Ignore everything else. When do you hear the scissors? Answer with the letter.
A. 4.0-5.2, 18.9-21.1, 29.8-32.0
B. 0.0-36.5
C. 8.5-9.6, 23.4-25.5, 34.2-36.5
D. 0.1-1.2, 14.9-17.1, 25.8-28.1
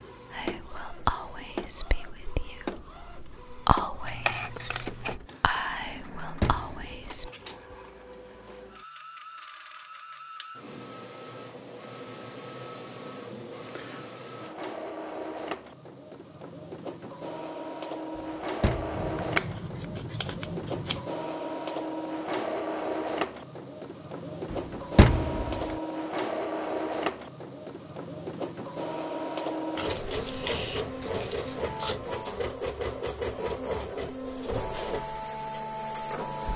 A.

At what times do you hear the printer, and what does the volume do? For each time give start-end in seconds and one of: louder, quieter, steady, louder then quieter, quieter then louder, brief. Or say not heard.
0.0-36.5 louder.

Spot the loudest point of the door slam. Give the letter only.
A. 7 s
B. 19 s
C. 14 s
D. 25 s
D.